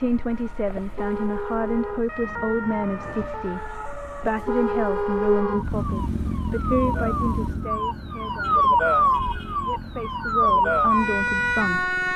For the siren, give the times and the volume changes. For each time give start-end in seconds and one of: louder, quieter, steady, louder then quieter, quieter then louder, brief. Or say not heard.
0.0-12.1 louder.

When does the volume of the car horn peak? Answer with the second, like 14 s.
5 s.